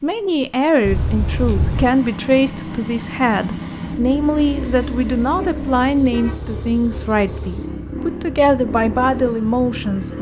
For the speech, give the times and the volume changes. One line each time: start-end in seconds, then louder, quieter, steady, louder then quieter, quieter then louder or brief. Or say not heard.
0.0-10.1 steady.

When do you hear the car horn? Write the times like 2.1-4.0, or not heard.
0.8-1.9, 5.3-6.5.